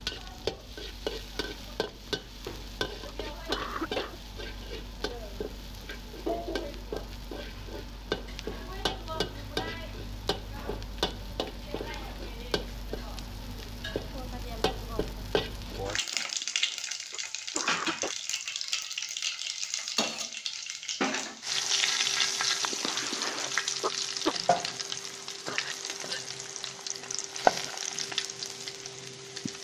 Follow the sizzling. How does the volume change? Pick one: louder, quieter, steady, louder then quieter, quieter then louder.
louder.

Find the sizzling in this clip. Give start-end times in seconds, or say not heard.
0.0-29.6.